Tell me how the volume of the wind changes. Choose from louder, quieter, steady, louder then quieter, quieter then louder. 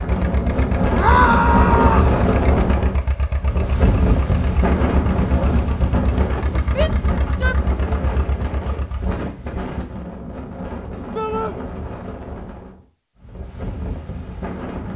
quieter.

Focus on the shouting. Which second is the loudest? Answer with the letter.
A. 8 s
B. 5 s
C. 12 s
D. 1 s
D.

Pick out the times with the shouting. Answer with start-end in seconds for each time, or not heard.
0.9-2.1, 6.8-7.5, 11.2-11.6.